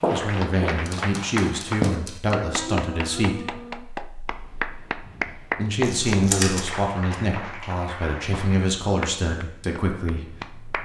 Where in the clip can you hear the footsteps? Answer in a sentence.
You can hear the footsteps from 0.0 to 1.9 s.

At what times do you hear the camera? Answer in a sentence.
The camera can be heard from 0.8 to 2.4 s and from 5.8 to 6.8 s.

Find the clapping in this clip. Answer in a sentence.
You can hear the clapping from 0.1 to 10.8 s.